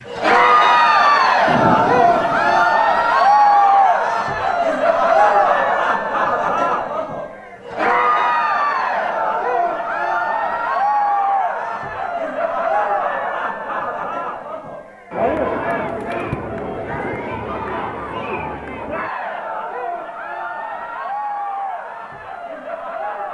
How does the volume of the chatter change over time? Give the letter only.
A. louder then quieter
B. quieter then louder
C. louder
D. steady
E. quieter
E.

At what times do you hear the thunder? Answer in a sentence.
You can hear the thunder from 1.4 to 2.6 s.